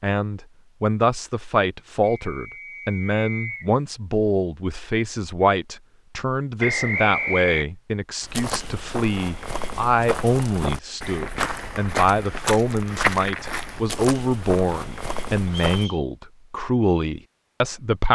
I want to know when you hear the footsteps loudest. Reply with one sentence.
The loudest moment of the footsteps is at 13 seconds.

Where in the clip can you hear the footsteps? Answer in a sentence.
You can hear the footsteps from 8.2 to 15.8 s.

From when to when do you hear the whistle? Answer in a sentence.
You can hear the whistle from 2.0 to 3.7 s, from 6.6 to 7.7 s and from 15.4 to 16.1 s.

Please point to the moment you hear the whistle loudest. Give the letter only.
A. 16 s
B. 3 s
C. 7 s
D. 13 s
C.